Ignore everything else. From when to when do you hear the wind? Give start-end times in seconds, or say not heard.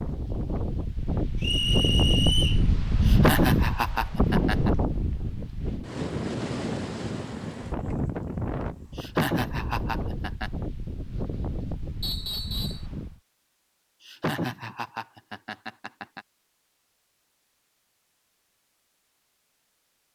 0.0-13.2.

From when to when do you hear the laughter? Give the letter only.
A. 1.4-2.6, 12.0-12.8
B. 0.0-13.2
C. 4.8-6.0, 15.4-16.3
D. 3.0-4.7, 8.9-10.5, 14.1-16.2
D.